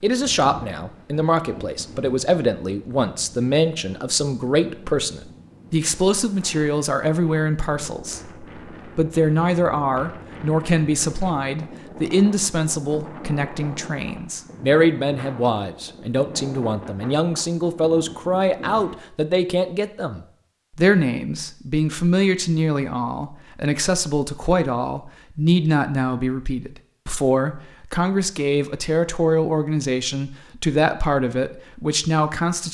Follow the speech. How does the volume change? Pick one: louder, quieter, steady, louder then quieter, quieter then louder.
steady.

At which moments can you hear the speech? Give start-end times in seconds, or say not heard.
0.0-32.6.